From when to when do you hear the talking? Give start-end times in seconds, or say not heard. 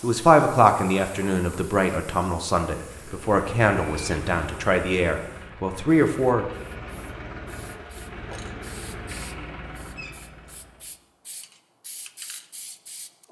0.0-6.5.